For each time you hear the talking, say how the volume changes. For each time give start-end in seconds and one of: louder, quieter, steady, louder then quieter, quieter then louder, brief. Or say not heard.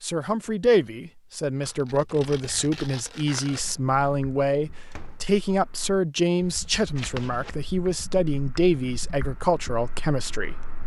0.0-10.7 steady.